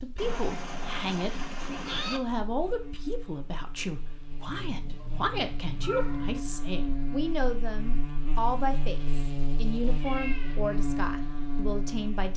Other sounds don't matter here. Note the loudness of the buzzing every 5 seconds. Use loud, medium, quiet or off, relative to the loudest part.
quiet, loud, loud.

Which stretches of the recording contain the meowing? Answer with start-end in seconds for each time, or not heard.
0.1-2.2, 4.5-6.4, 10.0-10.6.